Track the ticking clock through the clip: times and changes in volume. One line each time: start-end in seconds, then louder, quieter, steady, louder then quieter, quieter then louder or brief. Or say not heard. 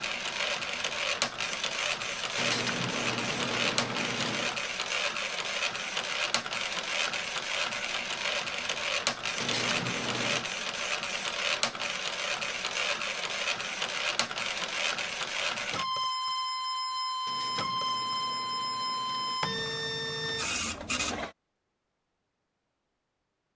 not heard.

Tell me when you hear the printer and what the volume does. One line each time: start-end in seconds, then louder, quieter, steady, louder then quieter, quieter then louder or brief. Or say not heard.
0.0-21.4 steady.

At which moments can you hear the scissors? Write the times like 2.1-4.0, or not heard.
2.4-4.5, 9.3-10.4, 17.2-19.4.